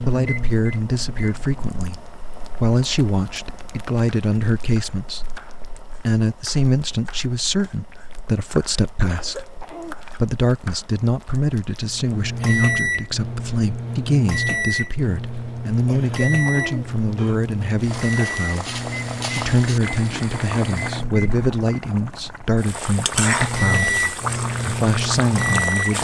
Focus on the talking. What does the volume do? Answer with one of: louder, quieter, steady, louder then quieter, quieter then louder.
steady.